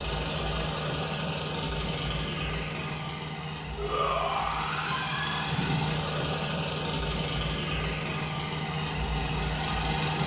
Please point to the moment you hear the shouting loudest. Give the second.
4 s.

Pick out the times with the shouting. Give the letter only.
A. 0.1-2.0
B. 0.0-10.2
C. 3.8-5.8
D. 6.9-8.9
C.